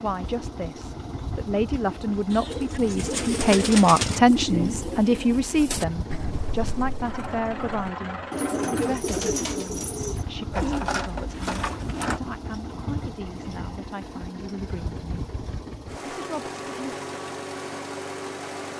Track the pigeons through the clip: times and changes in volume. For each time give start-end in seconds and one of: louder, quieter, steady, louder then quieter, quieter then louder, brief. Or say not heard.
2.3-12.2 quieter then louder.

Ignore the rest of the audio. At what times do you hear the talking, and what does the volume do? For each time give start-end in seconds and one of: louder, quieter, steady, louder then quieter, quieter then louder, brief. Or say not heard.
0.0-15.1 louder then quieter
16.1-16.9 brief.